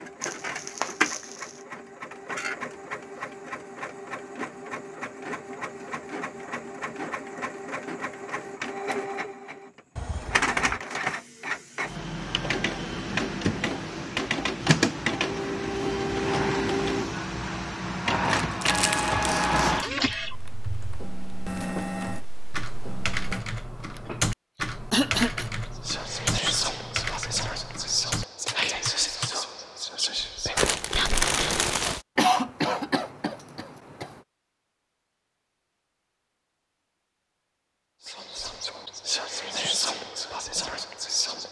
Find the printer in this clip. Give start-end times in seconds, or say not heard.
0.0-23.4.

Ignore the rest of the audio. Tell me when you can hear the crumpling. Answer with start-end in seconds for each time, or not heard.
0.2-1.6, 18.4-19.9, 30.6-32.0.